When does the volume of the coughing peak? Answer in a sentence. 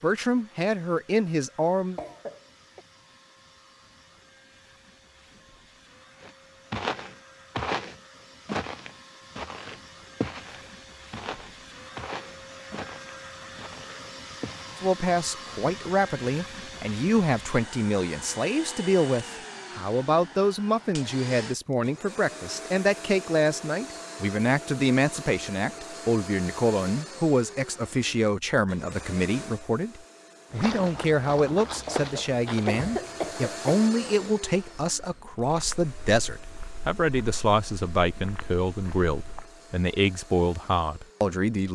The volume of the coughing peaks at 33 seconds.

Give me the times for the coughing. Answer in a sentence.
You can hear the coughing from 1.9 to 2.8 s and from 31.9 to 33.9 s.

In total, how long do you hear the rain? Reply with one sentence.
The rain can't be heard in this clip.